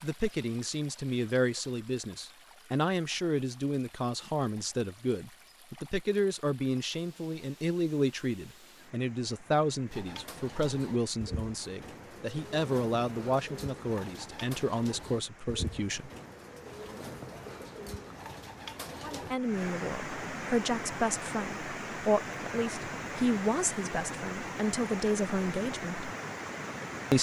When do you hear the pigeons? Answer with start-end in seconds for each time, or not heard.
9.8-19.4.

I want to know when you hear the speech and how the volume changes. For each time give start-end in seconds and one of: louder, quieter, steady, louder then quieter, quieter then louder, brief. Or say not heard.
0.0-16.1 steady
19.0-26.1 steady.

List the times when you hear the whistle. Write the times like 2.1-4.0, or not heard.
not heard.